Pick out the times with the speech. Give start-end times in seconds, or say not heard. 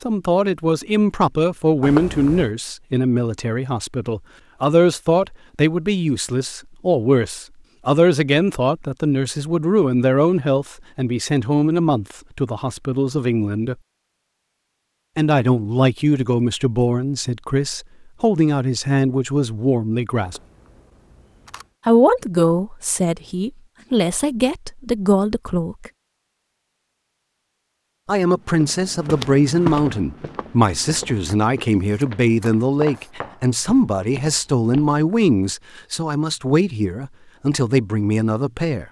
0.0-13.8, 15.2-20.4, 21.9-25.9, 28.1-38.8.